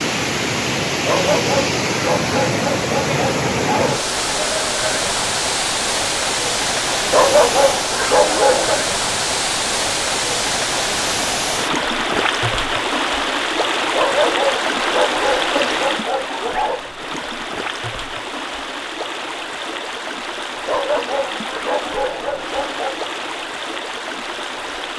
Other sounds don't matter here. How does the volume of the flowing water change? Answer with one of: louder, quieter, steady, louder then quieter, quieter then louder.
quieter.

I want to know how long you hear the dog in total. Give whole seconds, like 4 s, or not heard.
10 s.